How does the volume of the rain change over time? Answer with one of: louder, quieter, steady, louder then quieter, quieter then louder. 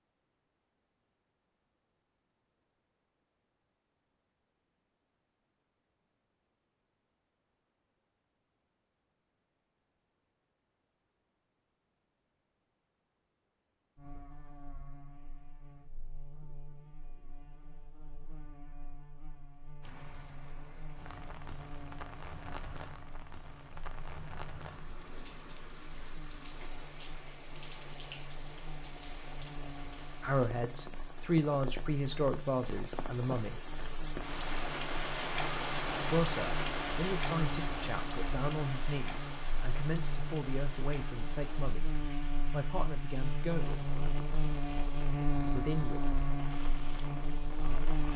louder then quieter.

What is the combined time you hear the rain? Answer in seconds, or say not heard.
28 s.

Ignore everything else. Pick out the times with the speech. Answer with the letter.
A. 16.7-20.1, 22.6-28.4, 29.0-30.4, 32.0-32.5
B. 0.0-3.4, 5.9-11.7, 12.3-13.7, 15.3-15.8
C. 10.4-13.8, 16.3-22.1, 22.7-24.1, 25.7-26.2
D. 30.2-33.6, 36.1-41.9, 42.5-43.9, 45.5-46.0
D.